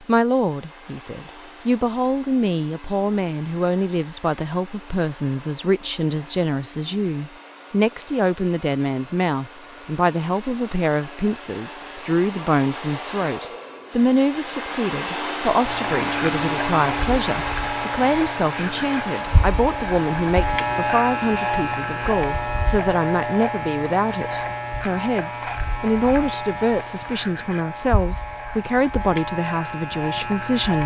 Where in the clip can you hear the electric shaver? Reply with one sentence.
You can hear the electric shaver from 15.6 to 30.8 s.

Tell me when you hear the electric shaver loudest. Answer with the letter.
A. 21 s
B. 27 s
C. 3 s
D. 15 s
A.